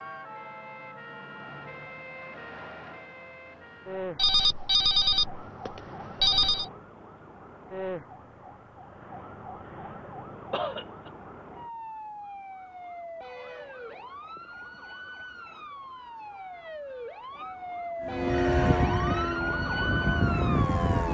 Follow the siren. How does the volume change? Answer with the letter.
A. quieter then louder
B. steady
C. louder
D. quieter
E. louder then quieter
C.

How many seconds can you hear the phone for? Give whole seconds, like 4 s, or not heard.
4 s.